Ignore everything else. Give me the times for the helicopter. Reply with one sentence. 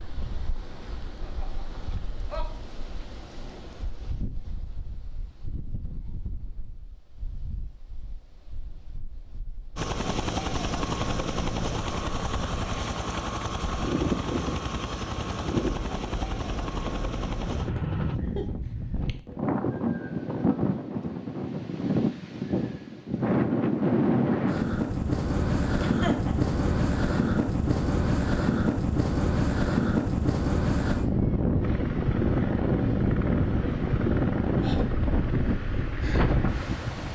You can hear the helicopter from 9.8 to 18.2 s and from 31.6 to 37.0 s.